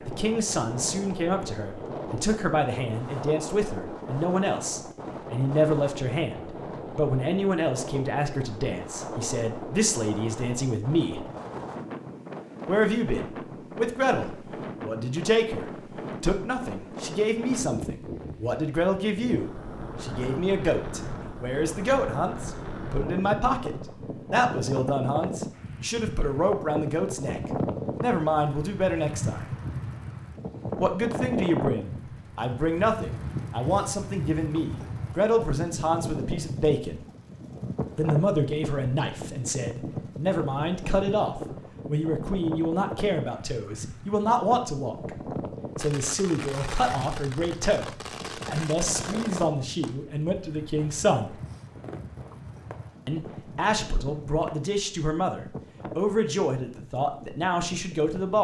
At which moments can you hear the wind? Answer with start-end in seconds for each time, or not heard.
0.0-58.3.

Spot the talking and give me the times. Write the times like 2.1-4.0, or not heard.
0.1-11.2, 12.7-29.6, 30.8-37.0, 38.0-45.1, 45.8-51.4, 53.0-58.3.